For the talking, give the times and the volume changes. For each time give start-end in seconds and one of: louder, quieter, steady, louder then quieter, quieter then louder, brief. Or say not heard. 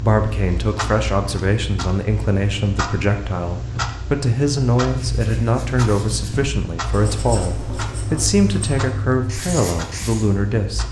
0.0-10.8 steady.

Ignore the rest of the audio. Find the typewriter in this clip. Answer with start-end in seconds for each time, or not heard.
not heard.